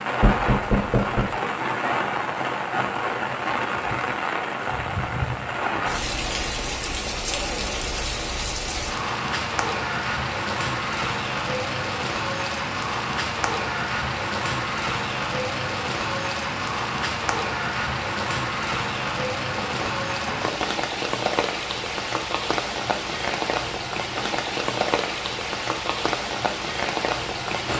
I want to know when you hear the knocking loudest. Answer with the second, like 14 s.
1 s.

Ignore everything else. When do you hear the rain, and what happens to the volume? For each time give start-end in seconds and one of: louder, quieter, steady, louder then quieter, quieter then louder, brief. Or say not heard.
0.0-27.7 steady.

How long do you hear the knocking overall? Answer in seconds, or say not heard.
2 s.